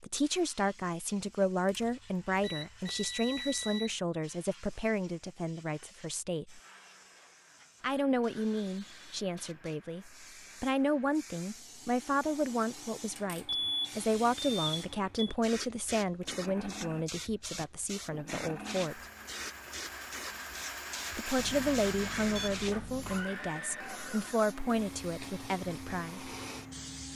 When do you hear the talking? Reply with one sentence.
The talking can be heard from 0.0 to 6.6 s, from 7.8 to 19.0 s and from 21.1 to 26.3 s.